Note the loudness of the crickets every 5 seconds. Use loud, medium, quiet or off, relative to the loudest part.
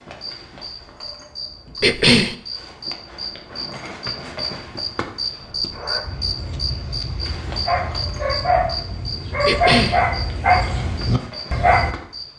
loud, loud, medium.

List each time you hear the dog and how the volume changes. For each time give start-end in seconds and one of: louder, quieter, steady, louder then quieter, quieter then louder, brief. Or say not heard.
5.7-11.9 louder.